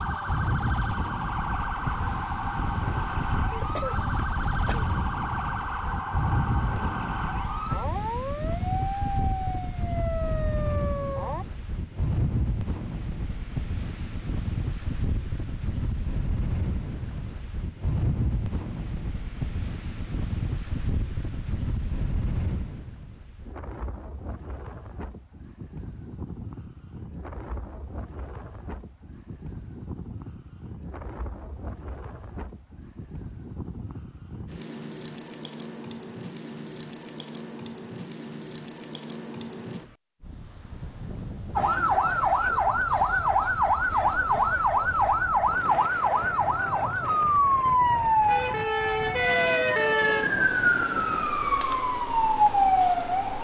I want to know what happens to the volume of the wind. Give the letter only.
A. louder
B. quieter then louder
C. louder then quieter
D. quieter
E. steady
D.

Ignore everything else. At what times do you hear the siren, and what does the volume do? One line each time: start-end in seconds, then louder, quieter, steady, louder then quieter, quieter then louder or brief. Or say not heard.
0.0-11.4 steady
41.5-53.4 steady.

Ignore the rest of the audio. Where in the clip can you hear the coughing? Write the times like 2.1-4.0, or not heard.
3.5-4.9.